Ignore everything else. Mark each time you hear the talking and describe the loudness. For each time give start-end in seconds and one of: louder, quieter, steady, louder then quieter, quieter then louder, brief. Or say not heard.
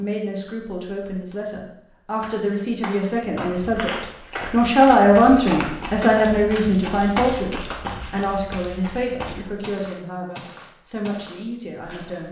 0.0-12.2 louder then quieter.